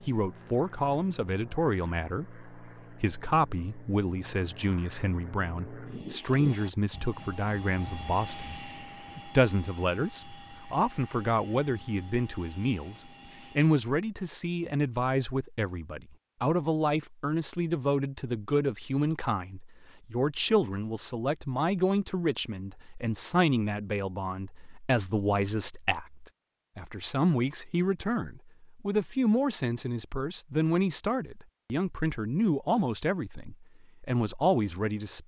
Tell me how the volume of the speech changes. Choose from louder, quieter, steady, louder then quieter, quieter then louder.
steady.